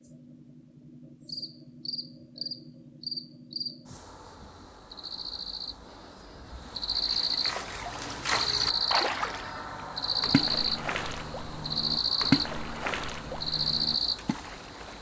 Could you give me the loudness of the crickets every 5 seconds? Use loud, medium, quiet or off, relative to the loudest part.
medium, loud, loud.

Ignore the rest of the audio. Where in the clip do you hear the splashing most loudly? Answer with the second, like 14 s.
12 s.